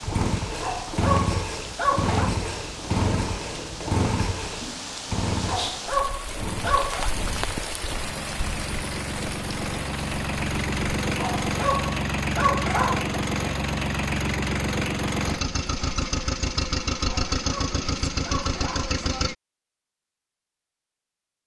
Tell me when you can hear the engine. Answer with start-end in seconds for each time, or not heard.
0.0-19.4.